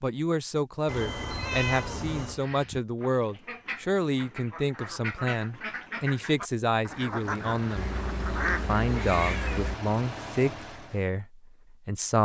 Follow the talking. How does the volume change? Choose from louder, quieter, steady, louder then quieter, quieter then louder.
steady.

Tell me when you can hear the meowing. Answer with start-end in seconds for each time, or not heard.
0.8-2.4, 7.8-9.8.